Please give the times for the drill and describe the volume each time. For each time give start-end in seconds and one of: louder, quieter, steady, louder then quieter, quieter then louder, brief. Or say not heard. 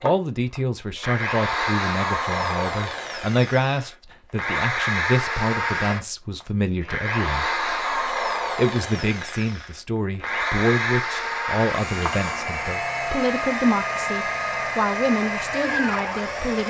0.0-16.6 steady.